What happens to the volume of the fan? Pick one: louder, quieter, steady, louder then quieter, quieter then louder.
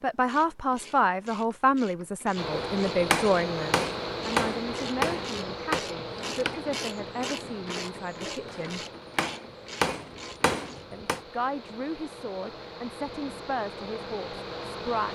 quieter then louder.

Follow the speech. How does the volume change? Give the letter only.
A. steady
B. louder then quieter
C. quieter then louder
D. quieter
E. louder
D.